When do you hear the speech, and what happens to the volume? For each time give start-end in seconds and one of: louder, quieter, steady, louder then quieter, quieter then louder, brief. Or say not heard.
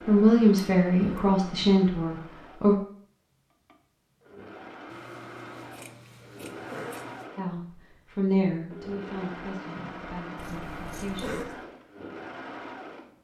0.0-2.8 brief
7.3-11.5 quieter.